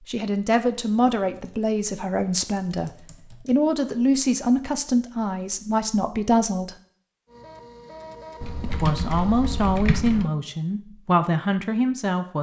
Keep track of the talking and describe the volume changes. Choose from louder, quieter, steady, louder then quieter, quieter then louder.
steady.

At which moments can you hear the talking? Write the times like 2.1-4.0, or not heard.
0.1-6.8, 8.6-12.3.